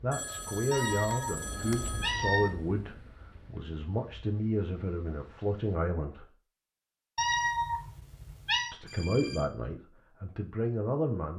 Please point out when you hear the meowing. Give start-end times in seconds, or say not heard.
0.7-2.5, 7.2-8.8.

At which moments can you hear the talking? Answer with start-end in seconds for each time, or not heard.
0.0-6.3, 8.7-11.3.